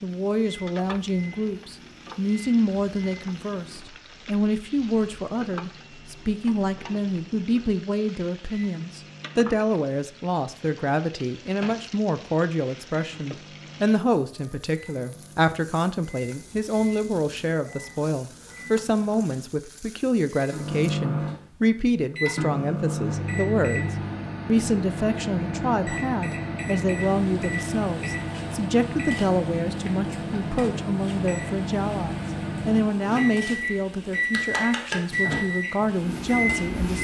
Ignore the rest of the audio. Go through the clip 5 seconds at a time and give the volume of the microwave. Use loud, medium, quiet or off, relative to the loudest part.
quiet, quiet, quiet, quiet, loud, loud, loud, loud.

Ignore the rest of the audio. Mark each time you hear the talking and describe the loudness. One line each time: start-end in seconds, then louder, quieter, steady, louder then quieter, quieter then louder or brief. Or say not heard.
0.0-37.0 steady.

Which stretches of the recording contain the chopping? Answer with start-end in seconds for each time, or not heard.
not heard.